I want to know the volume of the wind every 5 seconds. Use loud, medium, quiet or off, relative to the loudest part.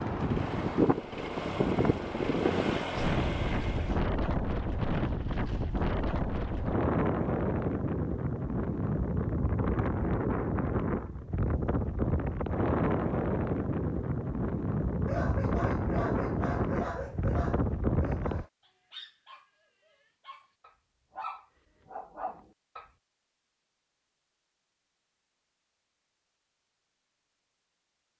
loud, loud, loud, loud, off, off.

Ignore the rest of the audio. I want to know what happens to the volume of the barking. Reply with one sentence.
The loudness of the barking goes down, then up.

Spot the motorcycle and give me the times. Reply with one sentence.
The motorcycle can be heard from 0.1 to 4.0 s.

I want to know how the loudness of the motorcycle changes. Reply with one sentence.
The loudness of the motorcycle goes up.